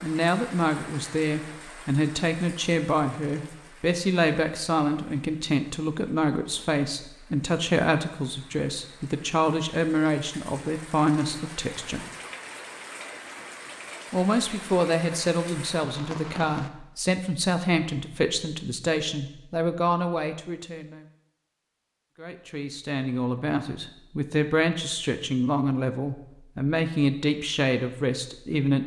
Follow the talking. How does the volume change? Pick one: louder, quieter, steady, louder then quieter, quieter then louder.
steady.